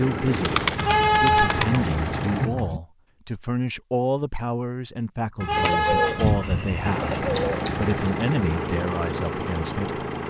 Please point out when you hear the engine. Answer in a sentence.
You can hear the engine from 0.0 to 2.5 s and from 6.8 to 10.2 s.